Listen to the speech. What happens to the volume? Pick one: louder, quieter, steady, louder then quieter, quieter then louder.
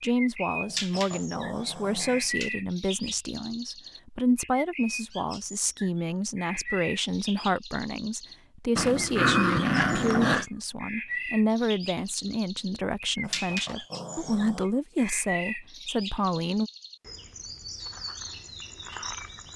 steady.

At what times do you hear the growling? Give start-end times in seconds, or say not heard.
0.7-2.5, 8.8-10.4, 13.2-14.7.